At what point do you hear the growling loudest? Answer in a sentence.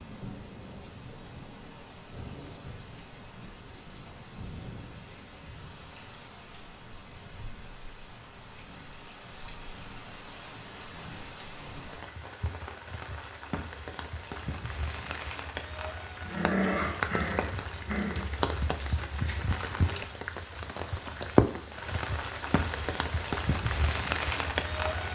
The loudest moment of the growling is at 17 seconds.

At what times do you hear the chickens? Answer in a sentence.
You can't hear the chickens here.